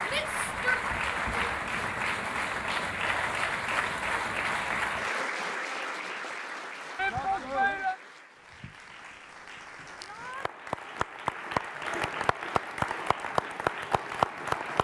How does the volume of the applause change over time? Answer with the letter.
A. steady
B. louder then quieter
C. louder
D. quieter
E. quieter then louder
E.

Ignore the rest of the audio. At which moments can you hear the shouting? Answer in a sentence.
You can hear the shouting from 0.1 to 0.8 s, from 7.0 to 8.0 s and from 9.9 to 10.5 s.